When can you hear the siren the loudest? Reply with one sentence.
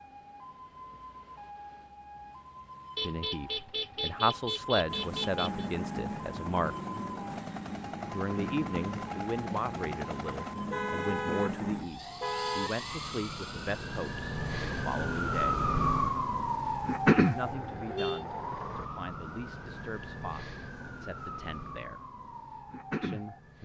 The volume of the siren peaks at 17 seconds.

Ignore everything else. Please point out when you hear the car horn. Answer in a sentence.
The car horn can be heard from 3.0 to 5.7 s, from 10.7 to 12.7 s and from 17.4 to 18.2 s.